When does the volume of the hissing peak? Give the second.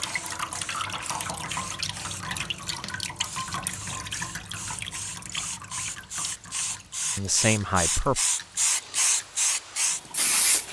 9 s.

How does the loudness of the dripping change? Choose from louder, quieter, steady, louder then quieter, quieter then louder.
quieter.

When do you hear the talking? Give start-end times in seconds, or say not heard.
7.2-8.2.